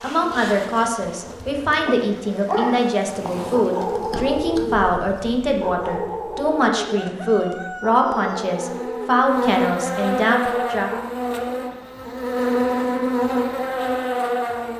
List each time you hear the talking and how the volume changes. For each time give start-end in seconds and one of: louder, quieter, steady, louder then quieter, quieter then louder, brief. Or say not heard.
0.0-10.9 steady.